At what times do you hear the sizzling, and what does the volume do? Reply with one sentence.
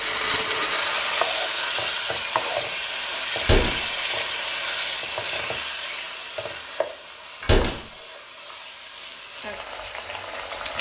The sizzling can be heard from 0.0 to 10.7 s, getting quieter.